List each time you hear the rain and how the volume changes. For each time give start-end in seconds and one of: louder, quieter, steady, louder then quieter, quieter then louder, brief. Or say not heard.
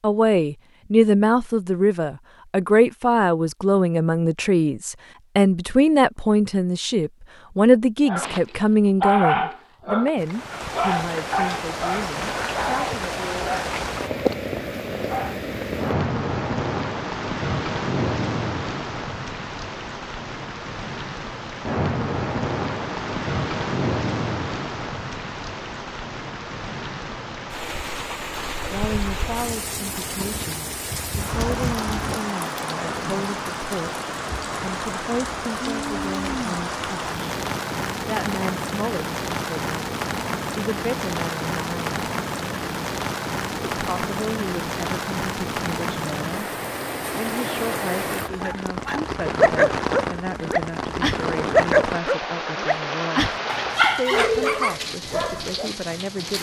10.2-56.3 steady.